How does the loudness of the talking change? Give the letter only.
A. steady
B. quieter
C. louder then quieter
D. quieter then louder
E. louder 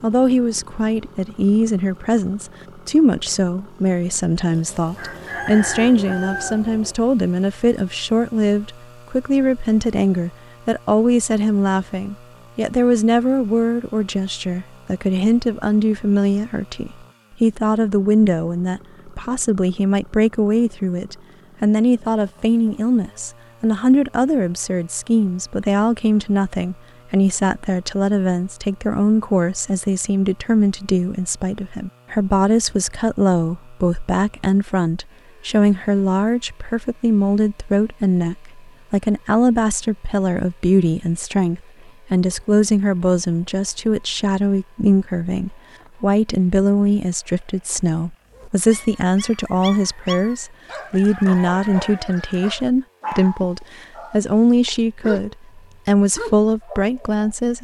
A.